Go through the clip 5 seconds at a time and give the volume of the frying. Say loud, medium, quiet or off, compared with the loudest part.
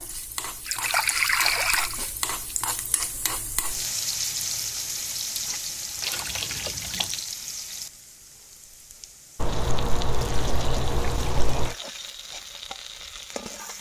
loud, loud, medium.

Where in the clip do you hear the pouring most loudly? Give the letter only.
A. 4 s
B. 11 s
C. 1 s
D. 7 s
C.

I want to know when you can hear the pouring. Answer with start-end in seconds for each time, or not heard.
0.7-2.0, 5.5-7.2, 9.3-11.8.